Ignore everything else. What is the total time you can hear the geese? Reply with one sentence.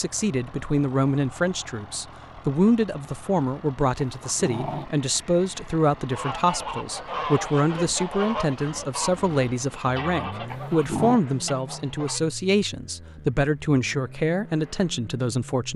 You can hear the geese for 6 seconds altogether.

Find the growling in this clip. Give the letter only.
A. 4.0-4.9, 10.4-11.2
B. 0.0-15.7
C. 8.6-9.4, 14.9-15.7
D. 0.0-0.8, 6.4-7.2
A.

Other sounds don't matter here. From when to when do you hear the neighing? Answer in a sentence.
The neighing can't be heard in this clip.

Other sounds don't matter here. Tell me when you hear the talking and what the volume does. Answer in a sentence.
The talking can be heard from 0.0 to 15.7 s, at a steady volume.